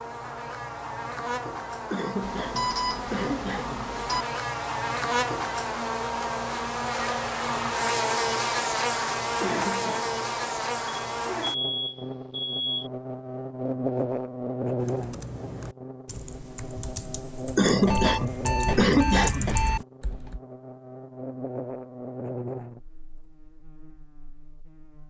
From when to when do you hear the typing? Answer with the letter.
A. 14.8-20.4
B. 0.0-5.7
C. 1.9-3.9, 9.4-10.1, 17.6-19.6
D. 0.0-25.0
A.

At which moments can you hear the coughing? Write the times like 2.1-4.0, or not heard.
1.9-3.9, 9.4-10.1, 17.6-19.6.